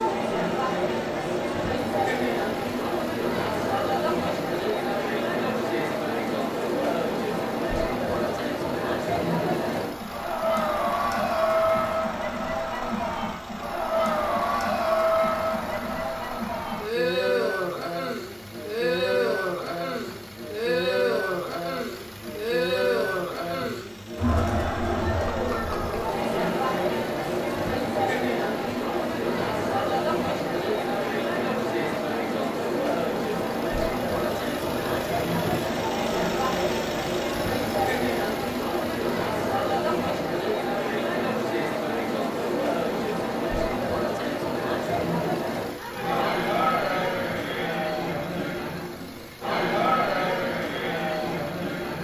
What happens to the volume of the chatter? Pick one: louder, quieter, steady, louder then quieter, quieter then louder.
steady.